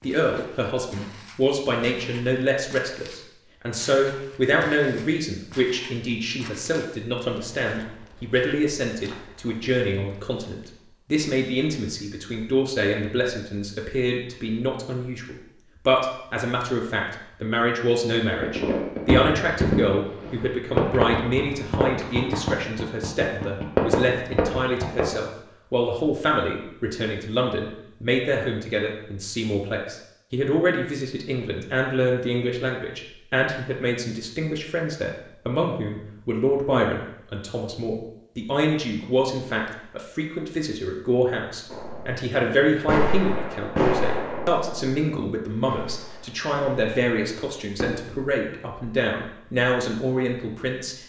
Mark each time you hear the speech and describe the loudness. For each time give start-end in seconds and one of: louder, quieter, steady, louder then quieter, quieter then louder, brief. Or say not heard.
0.0-51.0 steady.